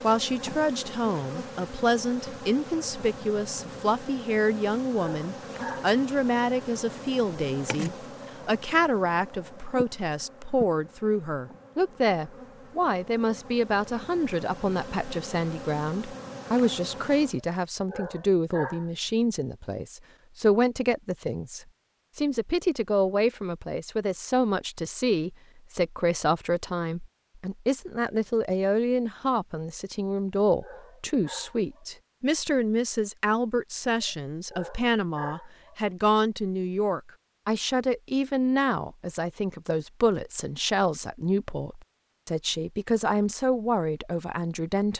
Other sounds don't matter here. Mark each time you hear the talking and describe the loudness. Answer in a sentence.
You can hear the talking from 0.0 to 44.9 s, at a steady volume.